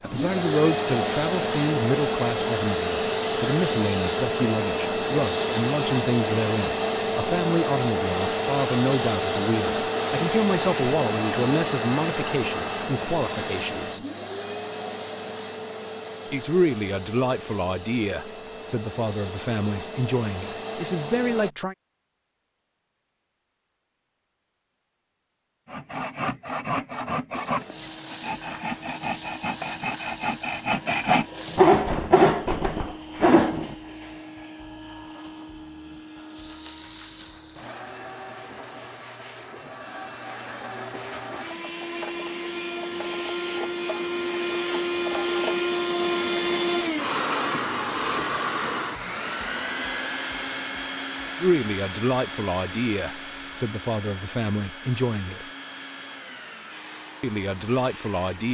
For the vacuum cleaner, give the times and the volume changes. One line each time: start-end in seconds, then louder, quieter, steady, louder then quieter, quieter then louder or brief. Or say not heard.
0.0-21.5 quieter
27.3-58.4 louder then quieter.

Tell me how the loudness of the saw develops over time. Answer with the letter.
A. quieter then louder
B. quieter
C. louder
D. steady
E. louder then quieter
C.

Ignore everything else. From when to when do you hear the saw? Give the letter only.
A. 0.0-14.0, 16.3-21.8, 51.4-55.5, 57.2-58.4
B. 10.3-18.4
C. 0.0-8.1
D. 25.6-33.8
D.